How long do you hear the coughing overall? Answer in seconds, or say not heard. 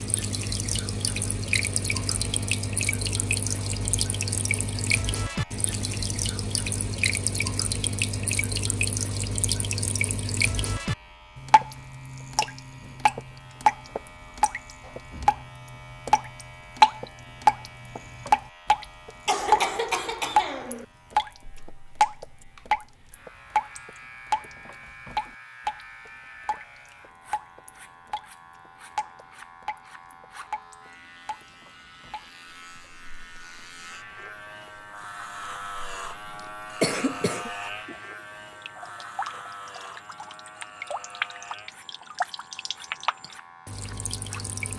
2 s.